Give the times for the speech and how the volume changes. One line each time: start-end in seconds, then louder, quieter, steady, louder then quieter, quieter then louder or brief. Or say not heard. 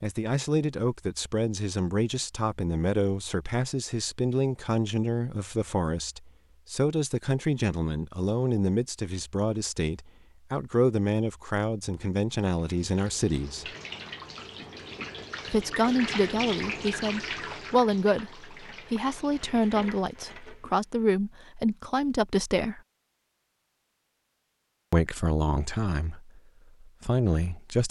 0.0-13.7 steady
15.4-22.8 steady
24.9-27.8 brief.